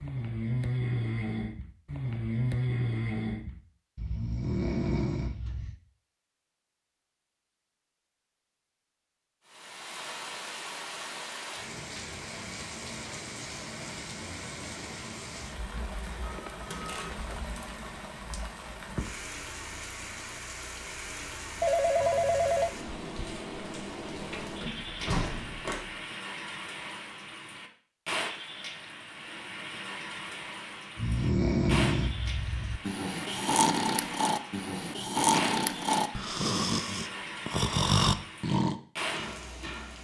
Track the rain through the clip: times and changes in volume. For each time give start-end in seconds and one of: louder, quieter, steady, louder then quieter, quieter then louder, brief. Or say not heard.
9.4-40.0 steady.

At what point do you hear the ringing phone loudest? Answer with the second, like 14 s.
22 s.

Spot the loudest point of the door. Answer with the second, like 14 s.
25 s.